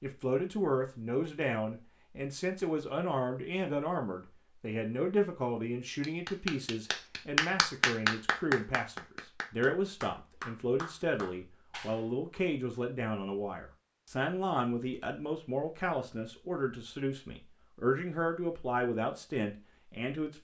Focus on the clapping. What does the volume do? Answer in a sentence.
The volume of the clapping goes down.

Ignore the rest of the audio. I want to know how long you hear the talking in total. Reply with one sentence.
You can hear the talking for 20 seconds altogether.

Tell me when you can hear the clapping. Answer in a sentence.
The clapping can be heard from 6.0 to 12.1 s.